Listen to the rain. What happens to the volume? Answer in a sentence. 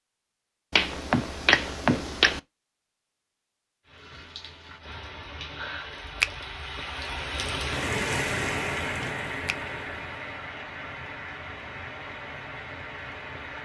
The volume of the rain goes up, then down.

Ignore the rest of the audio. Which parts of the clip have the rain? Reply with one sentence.
You can hear the rain from 3.9 to 13.5 s.